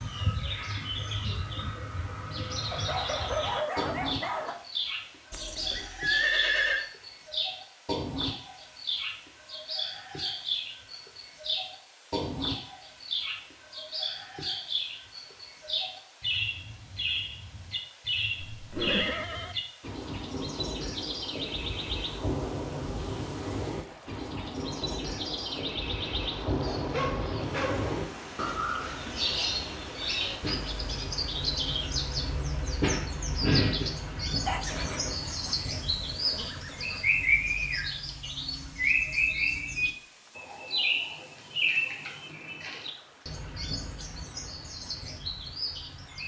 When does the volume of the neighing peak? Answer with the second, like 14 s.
6 s.